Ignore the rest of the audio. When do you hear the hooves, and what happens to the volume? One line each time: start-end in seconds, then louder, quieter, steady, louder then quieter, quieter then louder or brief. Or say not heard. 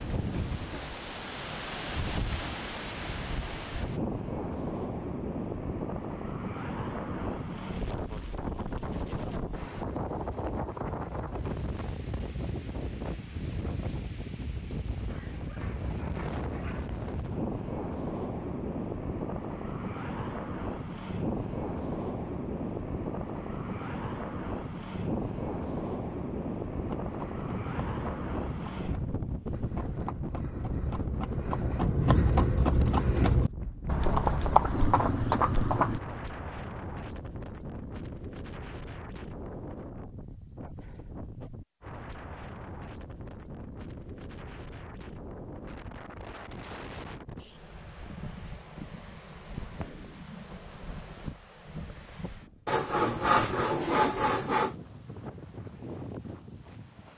26.8-36.0 louder.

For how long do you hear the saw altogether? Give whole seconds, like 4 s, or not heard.
2 s.